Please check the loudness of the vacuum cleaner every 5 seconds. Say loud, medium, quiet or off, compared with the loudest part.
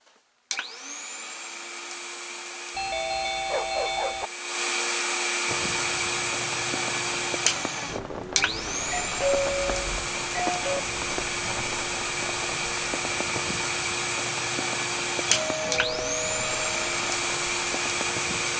medium, loud, loud, loud.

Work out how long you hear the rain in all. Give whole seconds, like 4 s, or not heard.
13 s.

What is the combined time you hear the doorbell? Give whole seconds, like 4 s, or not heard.
5 s.